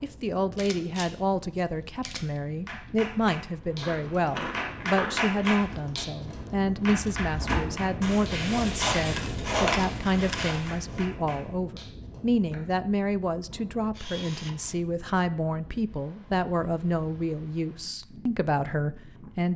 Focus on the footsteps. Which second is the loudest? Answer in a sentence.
The volume of the footsteps peaks at 10 seconds.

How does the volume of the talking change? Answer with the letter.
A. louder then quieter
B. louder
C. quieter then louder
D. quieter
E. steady
E.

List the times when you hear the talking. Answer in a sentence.
You can hear the talking from 0.0 to 19.5 s.